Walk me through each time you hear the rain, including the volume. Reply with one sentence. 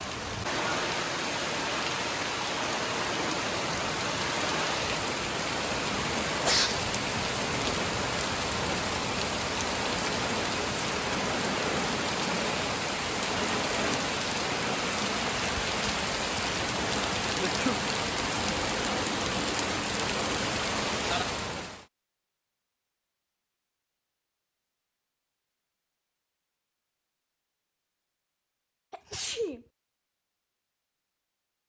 The rain can be heard from 0.0 to 21.9 s, at a steady volume.